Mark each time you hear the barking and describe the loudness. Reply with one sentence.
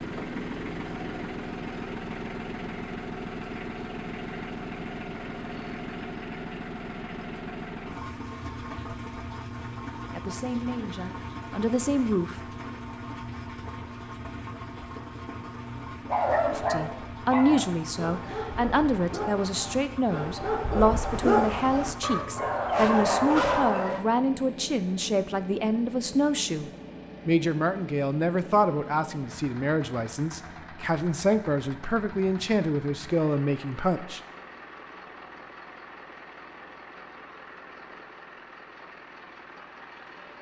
The barking can be heard from 16.1 to 24.1 s, getting quieter then louder.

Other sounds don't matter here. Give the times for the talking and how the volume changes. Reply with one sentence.
The talking can be heard briefly from 10.1 to 12.4 s; and from 16.4 to 34.2 s, at a steady volume.